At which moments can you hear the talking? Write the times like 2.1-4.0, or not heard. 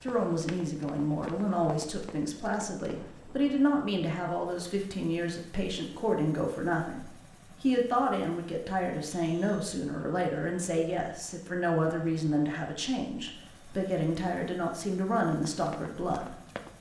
0.0-16.4.